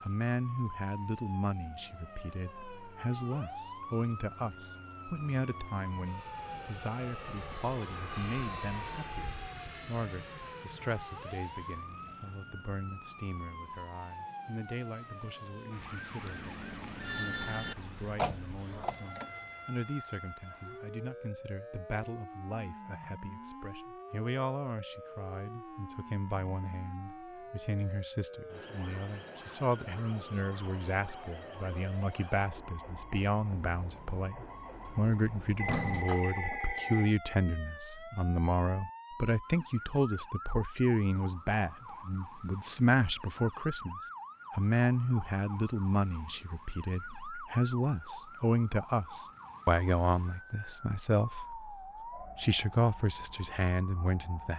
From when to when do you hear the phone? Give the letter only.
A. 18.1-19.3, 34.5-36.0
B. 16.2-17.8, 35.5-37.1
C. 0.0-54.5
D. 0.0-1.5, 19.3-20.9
B.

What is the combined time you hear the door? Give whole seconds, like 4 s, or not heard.
3 s.